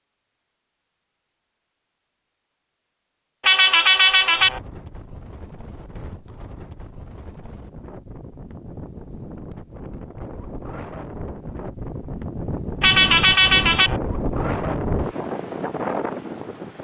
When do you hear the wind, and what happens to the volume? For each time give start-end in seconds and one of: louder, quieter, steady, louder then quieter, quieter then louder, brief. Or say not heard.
4.3-16.7 louder.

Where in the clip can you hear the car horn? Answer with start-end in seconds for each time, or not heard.
3.4-4.6, 12.8-14.0.